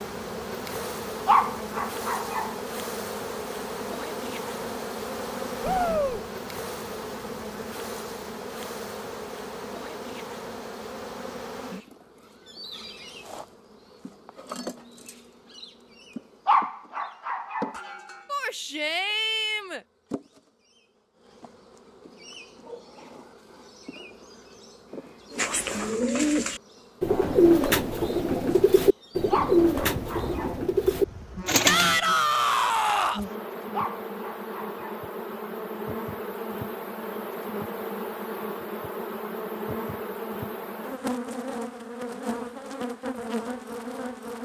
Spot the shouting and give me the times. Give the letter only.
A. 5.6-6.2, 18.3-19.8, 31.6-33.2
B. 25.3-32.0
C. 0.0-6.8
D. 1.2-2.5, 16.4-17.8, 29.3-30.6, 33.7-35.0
A.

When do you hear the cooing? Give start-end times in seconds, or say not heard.
25.3-32.0.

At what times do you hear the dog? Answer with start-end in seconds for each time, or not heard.
1.2-2.5, 16.4-17.8, 29.3-30.6, 33.7-35.0.